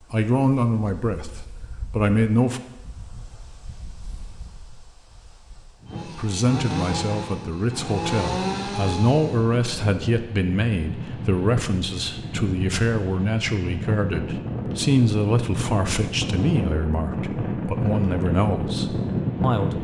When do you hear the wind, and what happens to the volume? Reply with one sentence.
You can hear the wind from 0.0 to 19.8 s, getting louder.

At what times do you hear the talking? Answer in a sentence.
You can hear the talking from 0.0 to 2.6 s and from 6.0 to 19.8 s.